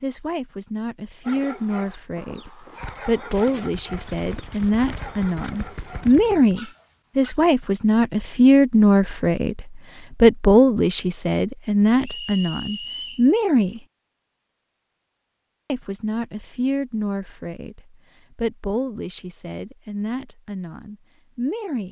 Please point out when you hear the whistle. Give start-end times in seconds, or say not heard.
12.0-13.2.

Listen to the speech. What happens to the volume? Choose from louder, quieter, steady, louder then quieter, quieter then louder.
louder then quieter.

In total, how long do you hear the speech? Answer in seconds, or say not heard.
20 s.